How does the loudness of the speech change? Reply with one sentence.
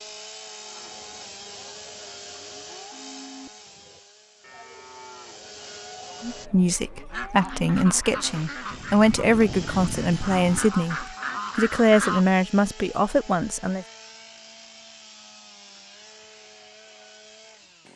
The loudness of the speech stays about the same.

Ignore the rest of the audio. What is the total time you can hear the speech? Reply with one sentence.
You can hear the speech for 8 seconds altogether.